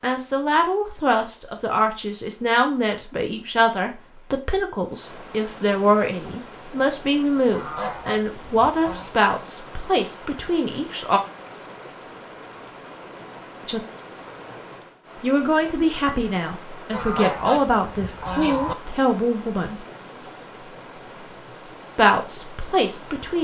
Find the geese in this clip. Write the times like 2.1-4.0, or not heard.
7.5-9.1, 16.9-18.8.